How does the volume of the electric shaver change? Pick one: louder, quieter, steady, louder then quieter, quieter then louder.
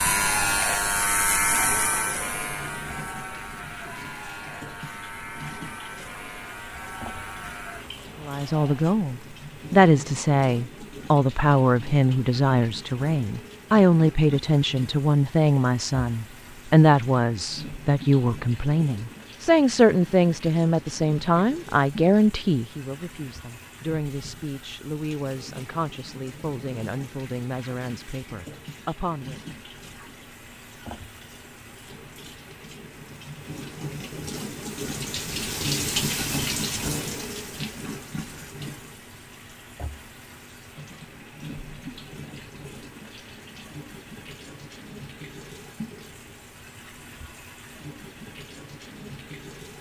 quieter.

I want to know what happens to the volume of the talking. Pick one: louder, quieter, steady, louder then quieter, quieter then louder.
quieter.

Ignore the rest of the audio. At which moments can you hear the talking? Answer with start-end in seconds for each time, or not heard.
8.2-29.4.